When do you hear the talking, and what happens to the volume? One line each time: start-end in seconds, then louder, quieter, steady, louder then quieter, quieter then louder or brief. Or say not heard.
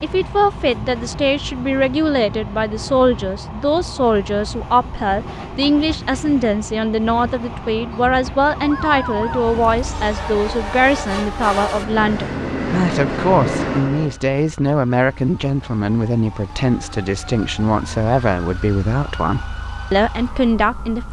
0.0-21.0 steady.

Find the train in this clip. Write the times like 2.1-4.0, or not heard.
0.0-14.2.